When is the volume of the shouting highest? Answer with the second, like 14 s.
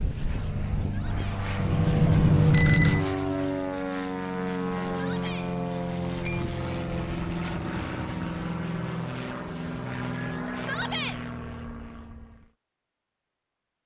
11 s.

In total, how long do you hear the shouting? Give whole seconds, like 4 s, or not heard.
2 s.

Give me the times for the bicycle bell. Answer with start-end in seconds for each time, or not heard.
1.6-3.0, 5.0-6.4, 10.1-10.7.